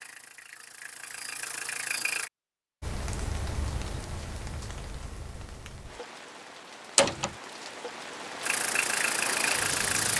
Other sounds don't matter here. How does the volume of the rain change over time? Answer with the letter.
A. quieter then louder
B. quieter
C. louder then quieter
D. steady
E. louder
A.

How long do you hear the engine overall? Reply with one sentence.
The engine can be heard for 4 seconds in total.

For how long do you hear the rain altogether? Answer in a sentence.
You can hear the rain for 7 seconds altogether.